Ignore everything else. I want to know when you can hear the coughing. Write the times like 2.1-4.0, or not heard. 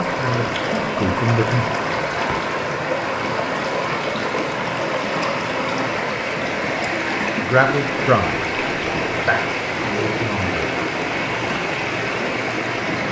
not heard.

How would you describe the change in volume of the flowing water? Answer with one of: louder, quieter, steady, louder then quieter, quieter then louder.
steady.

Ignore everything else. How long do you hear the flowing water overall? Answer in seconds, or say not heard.
13 s.